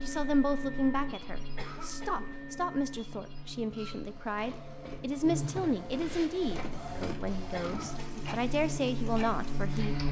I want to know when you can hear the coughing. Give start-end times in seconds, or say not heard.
1.6-2.4, 7.5-8.3.